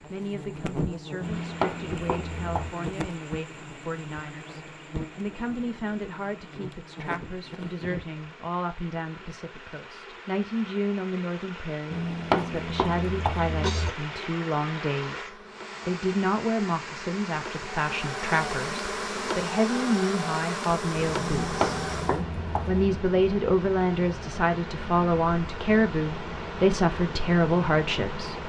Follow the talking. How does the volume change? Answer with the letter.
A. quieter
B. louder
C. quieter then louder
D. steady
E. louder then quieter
B.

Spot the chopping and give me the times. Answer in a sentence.
The chopping can be heard from 1.2 to 2.8 s, from 11.9 to 13.9 s and from 21.4 to 22.8 s.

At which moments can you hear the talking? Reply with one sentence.
The talking can be heard from 0.1 to 28.4 s.